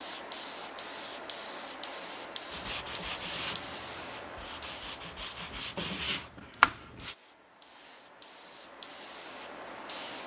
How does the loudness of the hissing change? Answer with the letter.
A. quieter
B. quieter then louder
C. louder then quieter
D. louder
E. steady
B.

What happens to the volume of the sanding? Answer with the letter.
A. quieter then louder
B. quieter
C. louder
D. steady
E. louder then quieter
A.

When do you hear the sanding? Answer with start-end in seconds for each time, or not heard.
2.5-7.2.